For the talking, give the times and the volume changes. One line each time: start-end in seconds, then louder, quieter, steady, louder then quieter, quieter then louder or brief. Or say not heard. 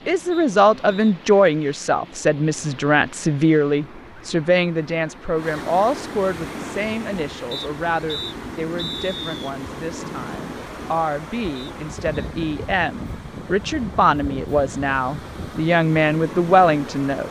0.1-17.2 quieter then louder.